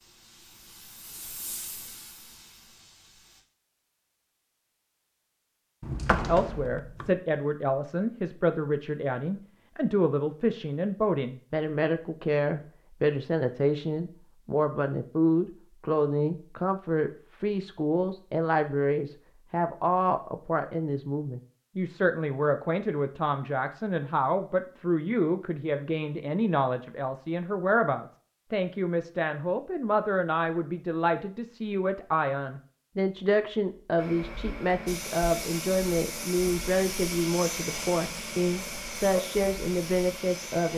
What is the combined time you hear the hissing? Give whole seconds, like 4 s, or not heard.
10 s.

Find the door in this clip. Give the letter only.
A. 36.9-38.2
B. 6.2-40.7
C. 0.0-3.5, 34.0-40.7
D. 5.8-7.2
D.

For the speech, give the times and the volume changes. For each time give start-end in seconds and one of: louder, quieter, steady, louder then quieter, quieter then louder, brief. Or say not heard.
6.2-40.7 steady.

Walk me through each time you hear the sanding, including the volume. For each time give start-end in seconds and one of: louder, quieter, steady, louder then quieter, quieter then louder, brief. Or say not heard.
not heard.